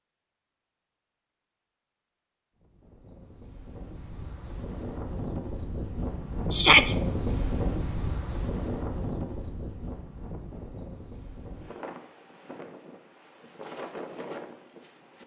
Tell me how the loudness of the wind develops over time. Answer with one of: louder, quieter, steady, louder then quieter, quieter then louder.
louder then quieter.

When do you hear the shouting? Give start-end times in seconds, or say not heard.
6.5-7.0.